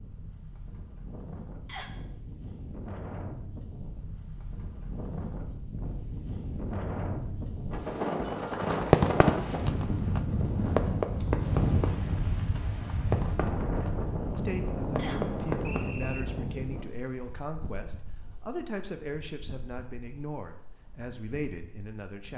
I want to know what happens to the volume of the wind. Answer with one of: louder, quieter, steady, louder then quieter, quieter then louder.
louder then quieter.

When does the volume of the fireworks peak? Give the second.
9 s.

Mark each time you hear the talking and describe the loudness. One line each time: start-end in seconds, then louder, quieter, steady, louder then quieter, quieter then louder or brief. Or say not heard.
14.3-22.3 steady.